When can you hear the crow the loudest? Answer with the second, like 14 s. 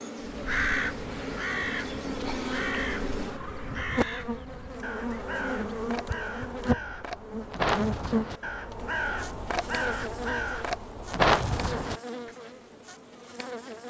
11 s.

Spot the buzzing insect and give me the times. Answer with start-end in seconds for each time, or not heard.
0.0-13.8.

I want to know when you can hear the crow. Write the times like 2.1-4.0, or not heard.
0.2-12.0.